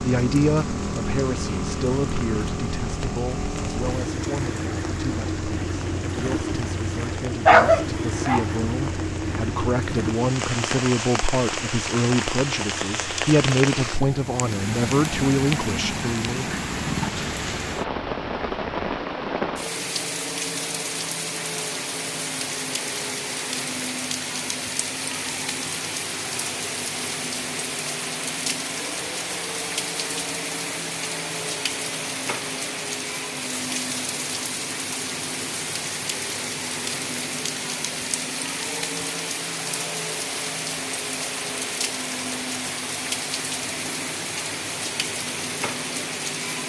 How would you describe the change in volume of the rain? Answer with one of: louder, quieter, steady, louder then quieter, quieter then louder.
louder.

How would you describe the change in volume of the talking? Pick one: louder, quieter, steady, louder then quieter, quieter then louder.
quieter then louder.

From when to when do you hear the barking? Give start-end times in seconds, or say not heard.
7.5-8.4.